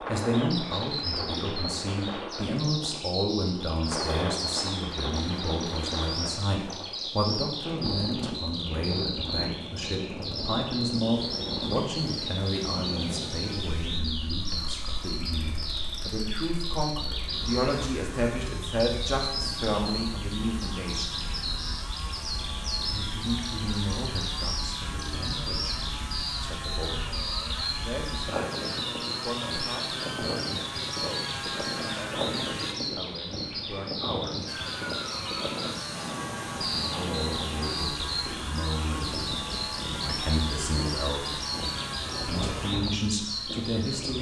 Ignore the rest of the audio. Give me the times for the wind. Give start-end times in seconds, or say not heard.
0.0-44.1.